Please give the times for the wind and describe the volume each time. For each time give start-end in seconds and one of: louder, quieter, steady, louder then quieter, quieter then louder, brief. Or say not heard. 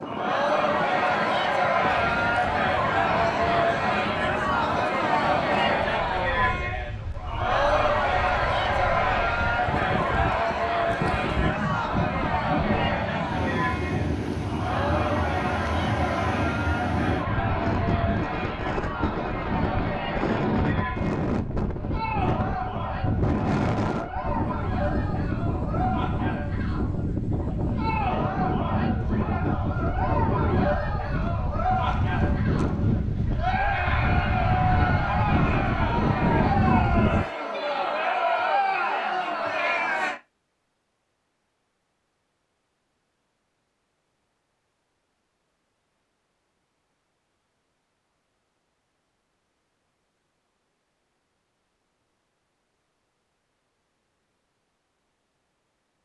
0.0-37.2 louder.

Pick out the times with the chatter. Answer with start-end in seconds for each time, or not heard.
0.0-40.2.